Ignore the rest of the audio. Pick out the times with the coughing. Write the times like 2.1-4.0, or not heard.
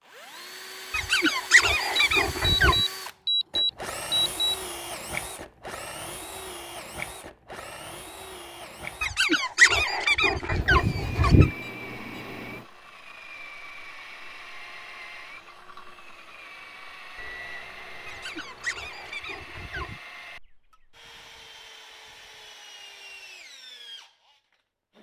not heard.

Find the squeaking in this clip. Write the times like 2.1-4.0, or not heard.
0.9-2.8, 9.0-11.5, 18.1-20.0.